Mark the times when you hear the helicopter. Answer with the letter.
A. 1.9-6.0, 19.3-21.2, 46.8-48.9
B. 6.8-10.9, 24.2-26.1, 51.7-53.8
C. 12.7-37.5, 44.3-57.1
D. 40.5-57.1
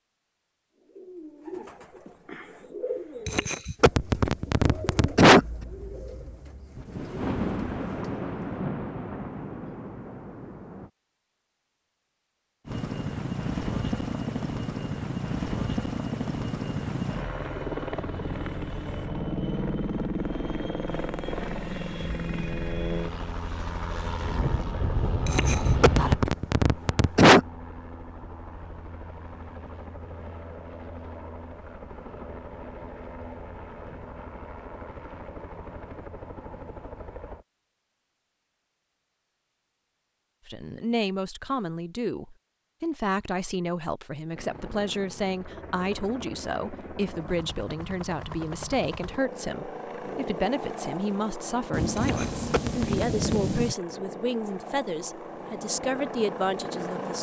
C.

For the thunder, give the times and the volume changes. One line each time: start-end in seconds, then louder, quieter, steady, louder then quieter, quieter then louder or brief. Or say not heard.
6.8-10.9 quieter
24.2-26.1 brief
51.7-53.8 brief.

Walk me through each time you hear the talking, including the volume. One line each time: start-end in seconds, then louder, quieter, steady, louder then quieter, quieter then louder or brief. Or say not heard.
40.5-57.1 steady.